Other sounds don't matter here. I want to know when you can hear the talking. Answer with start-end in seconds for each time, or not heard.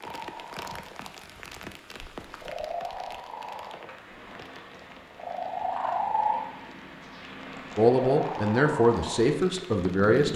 7.8-10.3.